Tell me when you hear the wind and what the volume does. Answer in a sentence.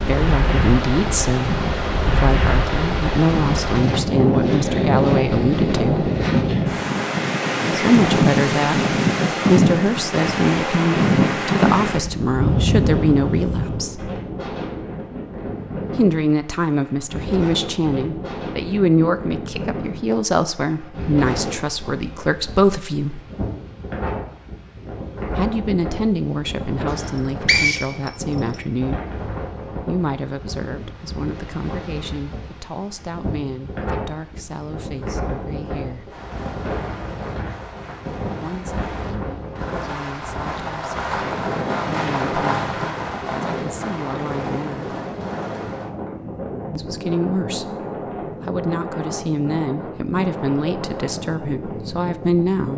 The wind can be heard from 0.0 to 52.7 s, getting quieter.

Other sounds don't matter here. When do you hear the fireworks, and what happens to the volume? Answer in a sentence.
You can hear the fireworks from 36.0 to 46.0 s, getting louder then quieter.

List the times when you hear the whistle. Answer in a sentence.
You can hear the whistle from 26.9 to 28.6 s.